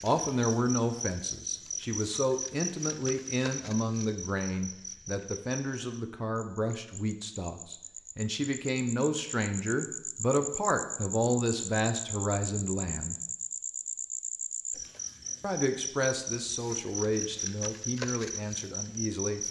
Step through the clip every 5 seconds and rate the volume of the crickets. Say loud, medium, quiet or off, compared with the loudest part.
loud, medium, loud, loud.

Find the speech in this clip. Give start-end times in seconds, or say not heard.
0.0-13.2, 15.4-19.4.